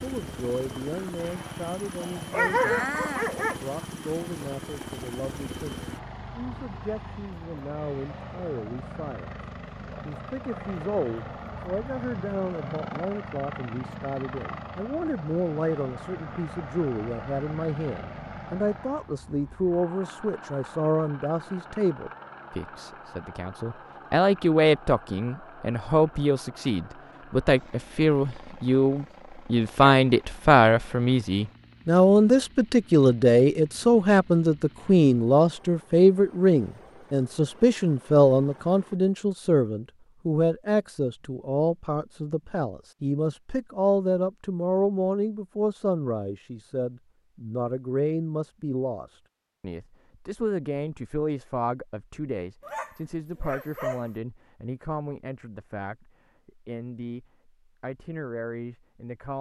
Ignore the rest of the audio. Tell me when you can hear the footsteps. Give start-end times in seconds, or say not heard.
not heard.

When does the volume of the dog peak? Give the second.
3 s.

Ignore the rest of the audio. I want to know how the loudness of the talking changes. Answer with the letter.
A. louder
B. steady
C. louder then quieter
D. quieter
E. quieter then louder
C.